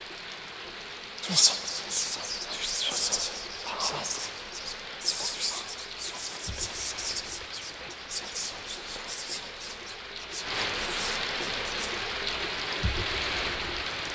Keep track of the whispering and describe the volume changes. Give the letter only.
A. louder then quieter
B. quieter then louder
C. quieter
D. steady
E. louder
C.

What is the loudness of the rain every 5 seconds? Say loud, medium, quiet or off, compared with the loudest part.
medium, medium, loud.